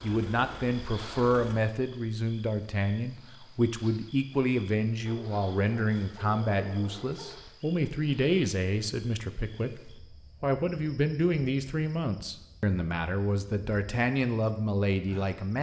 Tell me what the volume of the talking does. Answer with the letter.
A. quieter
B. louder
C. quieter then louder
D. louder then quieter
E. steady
E.